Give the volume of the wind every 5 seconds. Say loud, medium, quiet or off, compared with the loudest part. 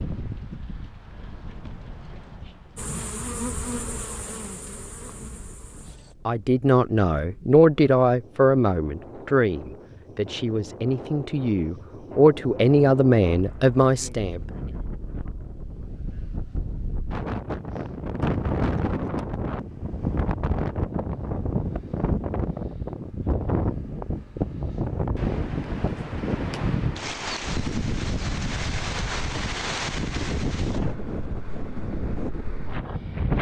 quiet, quiet, medium, loud, loud, loud, loud.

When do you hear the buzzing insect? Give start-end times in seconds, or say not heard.
2.8-6.2.